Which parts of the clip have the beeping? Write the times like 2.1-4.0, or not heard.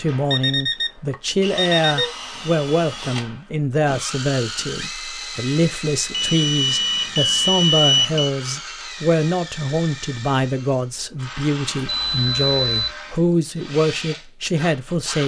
0.3-2.1, 6.1-8.3, 11.8-12.9.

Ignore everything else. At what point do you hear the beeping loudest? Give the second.
8 s.